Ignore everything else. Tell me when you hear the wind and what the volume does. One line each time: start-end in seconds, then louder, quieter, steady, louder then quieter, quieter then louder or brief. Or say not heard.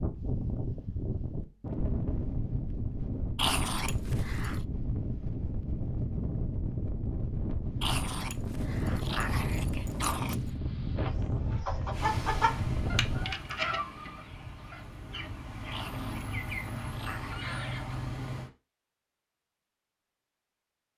0.0-13.3 steady.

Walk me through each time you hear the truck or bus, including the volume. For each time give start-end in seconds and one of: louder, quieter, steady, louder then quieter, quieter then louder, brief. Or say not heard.
11.9-18.5 quieter then louder.